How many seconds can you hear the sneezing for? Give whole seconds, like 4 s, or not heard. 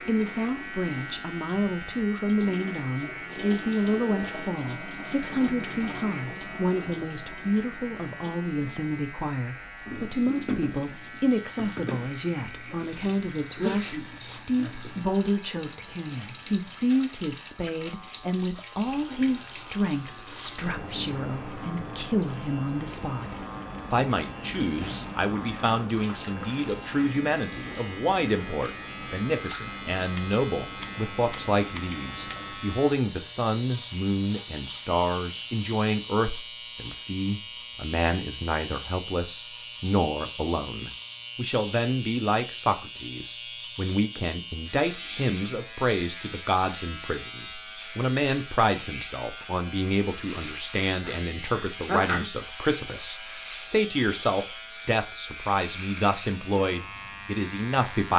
2 s.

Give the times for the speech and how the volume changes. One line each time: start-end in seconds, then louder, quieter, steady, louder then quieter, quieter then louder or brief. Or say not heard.
0.1-58.1 steady.